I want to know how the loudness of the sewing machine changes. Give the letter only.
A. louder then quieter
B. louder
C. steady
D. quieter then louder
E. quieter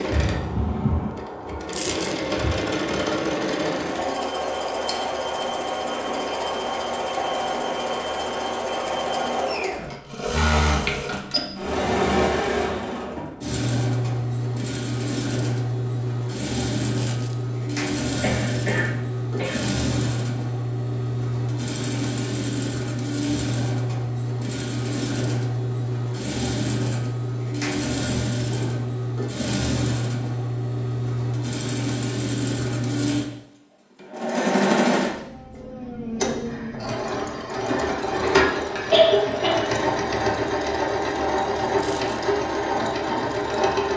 C.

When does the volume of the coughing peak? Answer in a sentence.
The volume of the coughing peaks at 39 seconds.